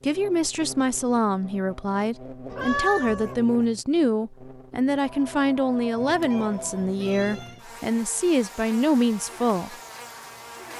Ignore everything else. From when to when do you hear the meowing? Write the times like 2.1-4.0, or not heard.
2.5-3.4, 6.0-7.7.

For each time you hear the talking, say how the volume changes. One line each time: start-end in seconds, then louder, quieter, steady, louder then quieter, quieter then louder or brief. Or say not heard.
0.0-9.8 steady.